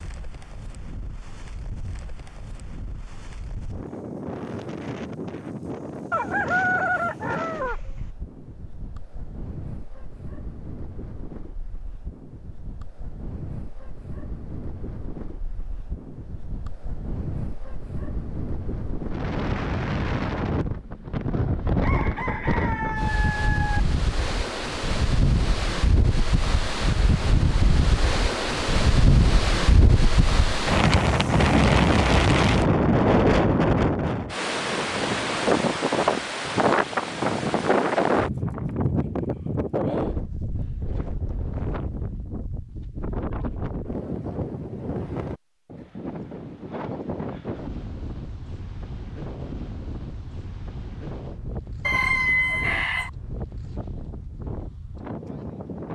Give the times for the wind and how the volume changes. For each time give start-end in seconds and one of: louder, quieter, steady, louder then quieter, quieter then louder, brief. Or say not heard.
0.0-55.9 louder then quieter.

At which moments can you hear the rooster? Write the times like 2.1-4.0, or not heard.
6.1-8.1, 21.8-23.8, 51.9-53.1.